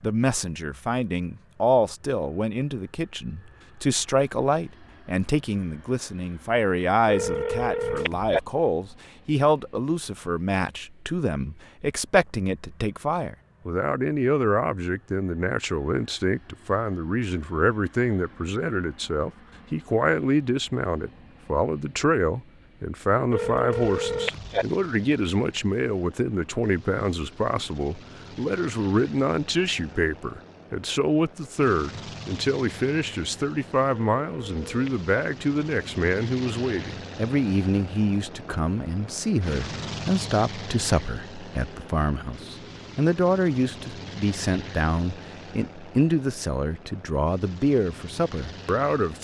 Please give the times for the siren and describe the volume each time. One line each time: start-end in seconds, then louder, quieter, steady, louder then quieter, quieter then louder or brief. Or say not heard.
not heard.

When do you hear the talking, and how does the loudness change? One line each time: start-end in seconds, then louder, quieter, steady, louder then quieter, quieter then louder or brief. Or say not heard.
0.0-49.1 steady.